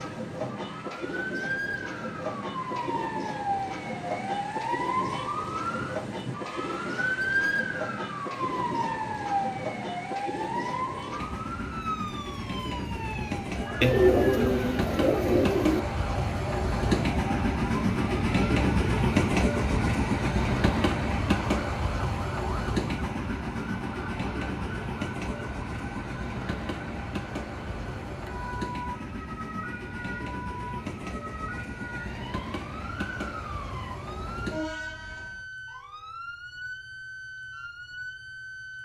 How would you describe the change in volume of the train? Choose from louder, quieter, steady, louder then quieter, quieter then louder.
louder then quieter.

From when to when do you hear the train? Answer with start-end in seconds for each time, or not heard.
0.0-35.5.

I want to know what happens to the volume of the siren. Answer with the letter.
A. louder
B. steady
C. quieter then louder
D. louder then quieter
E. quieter
E.